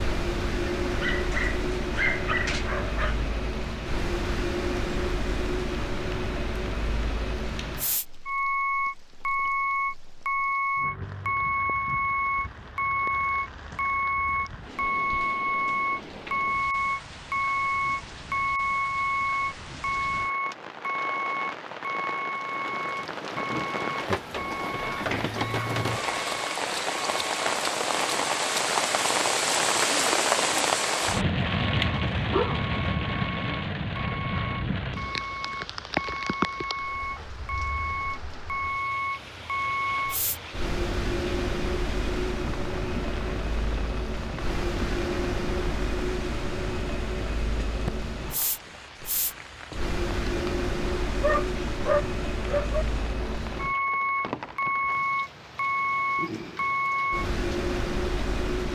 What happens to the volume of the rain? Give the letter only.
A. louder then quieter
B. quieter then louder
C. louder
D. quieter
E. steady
A.